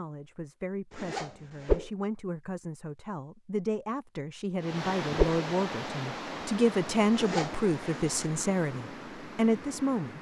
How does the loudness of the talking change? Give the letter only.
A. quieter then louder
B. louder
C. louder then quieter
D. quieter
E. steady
B.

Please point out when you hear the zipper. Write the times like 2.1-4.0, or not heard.
0.9-1.8, 7.1-8.3.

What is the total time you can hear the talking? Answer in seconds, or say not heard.
10 s.